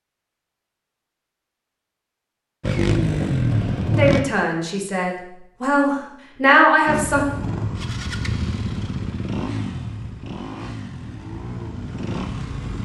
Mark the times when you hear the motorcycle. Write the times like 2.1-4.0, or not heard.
2.6-4.2, 6.8-12.8.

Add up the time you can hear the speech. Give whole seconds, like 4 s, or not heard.
3 s.